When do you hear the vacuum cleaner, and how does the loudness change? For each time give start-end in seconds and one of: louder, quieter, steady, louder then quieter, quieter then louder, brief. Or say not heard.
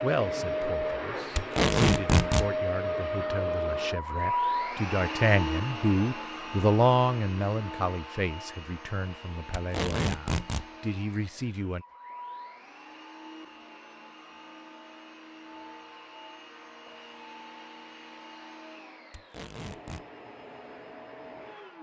0.0-21.7 quieter.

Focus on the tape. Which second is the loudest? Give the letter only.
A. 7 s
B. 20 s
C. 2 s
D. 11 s
C.